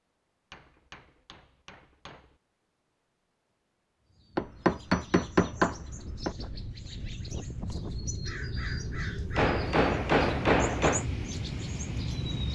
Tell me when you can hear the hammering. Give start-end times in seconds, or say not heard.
0.5-2.2, 4.3-6.3, 9.3-11.1.